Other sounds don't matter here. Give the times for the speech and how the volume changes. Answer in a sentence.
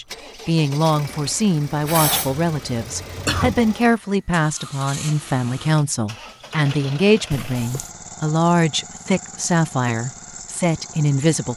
You can hear the speech from 0.0 to 11.5 s, at a steady volume.